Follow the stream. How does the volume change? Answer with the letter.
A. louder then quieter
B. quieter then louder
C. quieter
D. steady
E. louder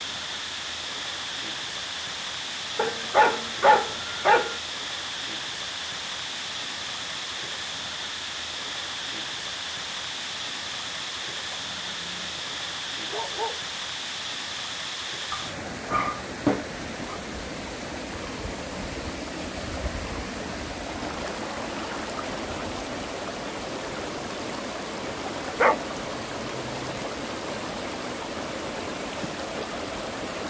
D.